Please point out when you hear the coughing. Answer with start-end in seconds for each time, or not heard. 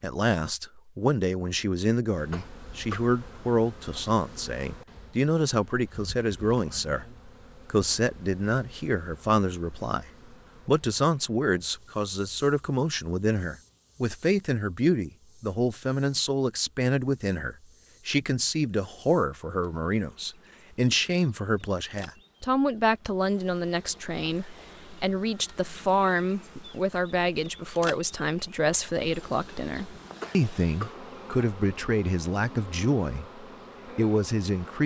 2.3-3.1, 30.2-31.0.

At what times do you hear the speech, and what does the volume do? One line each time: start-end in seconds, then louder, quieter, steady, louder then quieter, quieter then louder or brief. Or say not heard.
0.0-34.8 steady.